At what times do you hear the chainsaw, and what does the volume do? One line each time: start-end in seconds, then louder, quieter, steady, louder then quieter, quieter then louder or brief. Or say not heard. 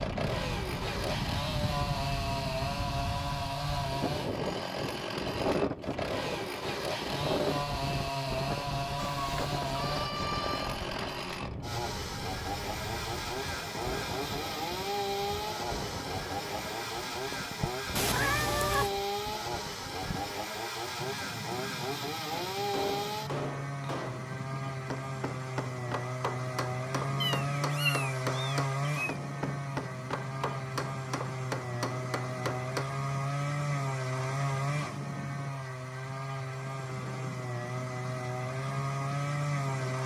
0.0-40.0 steady.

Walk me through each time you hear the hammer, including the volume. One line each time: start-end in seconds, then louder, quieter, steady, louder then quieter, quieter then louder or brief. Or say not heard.
22.3-33.0 steady.